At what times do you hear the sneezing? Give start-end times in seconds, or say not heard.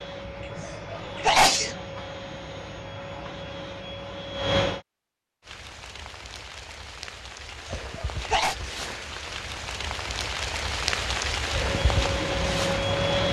0.5-1.8, 7.5-8.6.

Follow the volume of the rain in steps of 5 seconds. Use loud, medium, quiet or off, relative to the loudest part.
off, medium, loud.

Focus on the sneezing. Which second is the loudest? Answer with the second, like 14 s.
1 s.